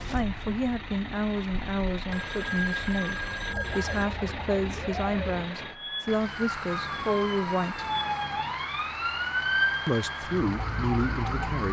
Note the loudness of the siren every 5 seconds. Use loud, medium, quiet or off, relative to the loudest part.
medium, loud, loud.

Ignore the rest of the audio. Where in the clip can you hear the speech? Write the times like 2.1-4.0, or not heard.
0.1-7.8, 9.8-11.6.